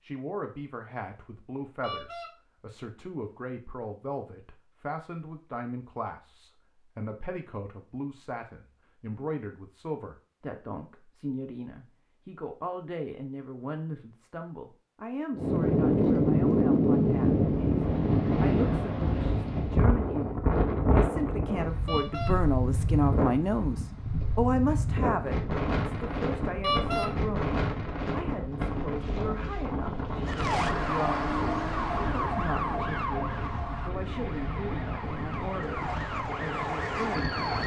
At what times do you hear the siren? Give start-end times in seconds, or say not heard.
30.2-37.6.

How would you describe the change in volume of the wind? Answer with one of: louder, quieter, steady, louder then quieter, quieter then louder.
quieter.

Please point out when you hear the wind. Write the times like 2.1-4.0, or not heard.
15.3-37.6.